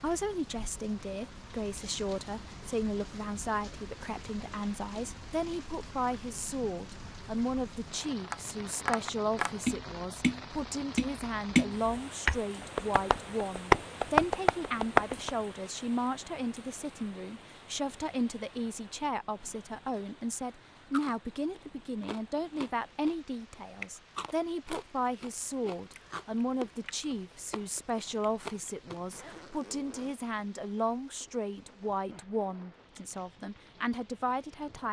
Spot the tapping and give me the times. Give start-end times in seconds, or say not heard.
8.2-15.3.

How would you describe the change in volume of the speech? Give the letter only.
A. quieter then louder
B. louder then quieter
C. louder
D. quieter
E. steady
E.